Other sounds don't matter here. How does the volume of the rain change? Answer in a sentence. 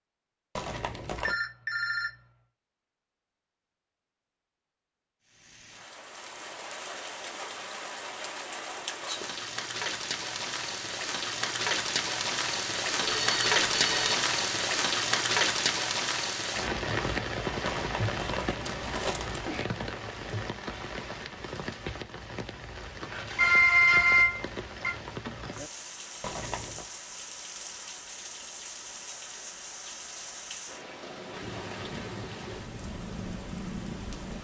The loudness of the rain goes up, then down.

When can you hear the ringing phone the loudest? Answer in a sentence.
The loudest moment of the ringing phone is at 24 seconds.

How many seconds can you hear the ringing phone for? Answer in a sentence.
You can hear the ringing phone for 4 seconds altogether.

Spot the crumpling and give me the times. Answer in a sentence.
The crumpling can be heard from 0.6 to 1.4 s, from 17.6 to 19.6 s and from 26.2 to 26.9 s.